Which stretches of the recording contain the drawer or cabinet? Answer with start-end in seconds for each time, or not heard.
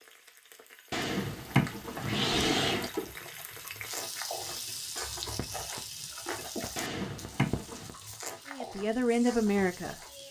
0.9-2.9, 6.8-7.9.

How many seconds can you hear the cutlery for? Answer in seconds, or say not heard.
not heard.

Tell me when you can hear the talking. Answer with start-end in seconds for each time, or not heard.
8.4-9.9.